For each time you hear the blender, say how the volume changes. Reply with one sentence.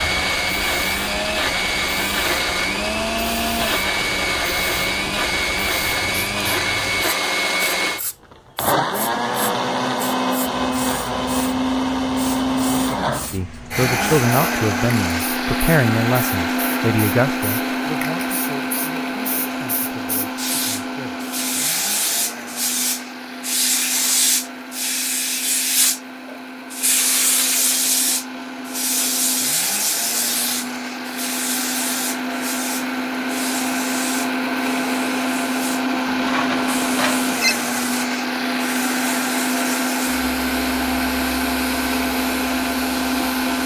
The blender can be heard from 0.0 to 43.6 s, getting quieter then louder.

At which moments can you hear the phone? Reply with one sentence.
The phone can be heard from 36.0 to 37.5 s.